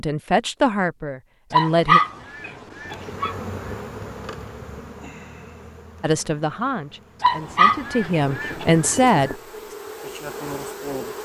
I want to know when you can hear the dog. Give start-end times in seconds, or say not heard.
1.5-3.4, 7.2-8.7.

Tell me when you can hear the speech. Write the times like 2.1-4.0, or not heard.
0.0-2.0, 6.0-9.3.